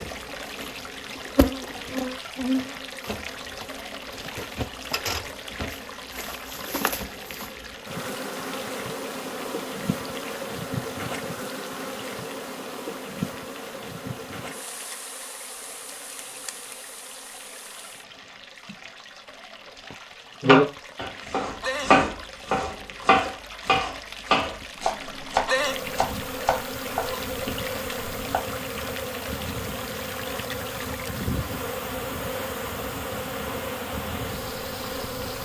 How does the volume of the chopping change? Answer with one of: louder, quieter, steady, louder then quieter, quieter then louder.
quieter.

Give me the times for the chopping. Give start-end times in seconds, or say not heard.
20.4-28.4.